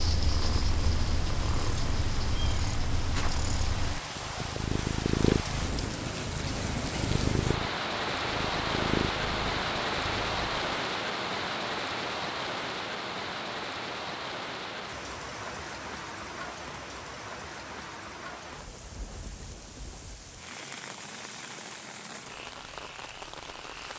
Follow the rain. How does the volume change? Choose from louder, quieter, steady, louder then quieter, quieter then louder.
louder then quieter.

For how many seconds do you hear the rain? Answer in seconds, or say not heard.
24 s.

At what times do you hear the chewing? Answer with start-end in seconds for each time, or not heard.
not heard.